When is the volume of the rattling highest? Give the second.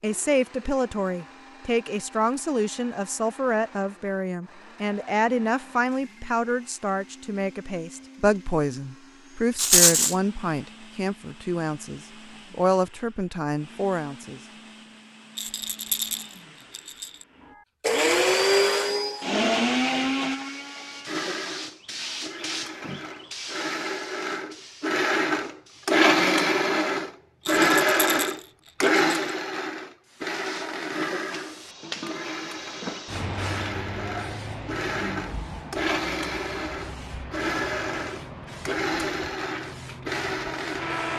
10 s.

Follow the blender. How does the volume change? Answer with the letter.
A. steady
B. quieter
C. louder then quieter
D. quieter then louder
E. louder
C.